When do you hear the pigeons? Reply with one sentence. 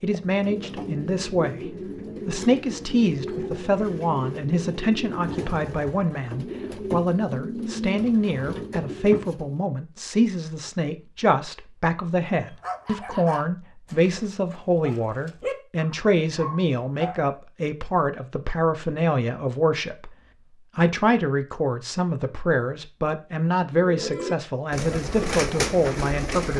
You can hear the pigeons from 0.0 to 9.6 s and from 23.7 to 26.5 s.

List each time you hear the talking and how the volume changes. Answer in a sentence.
You can hear the talking from 0.0 to 26.5 s, at a steady volume.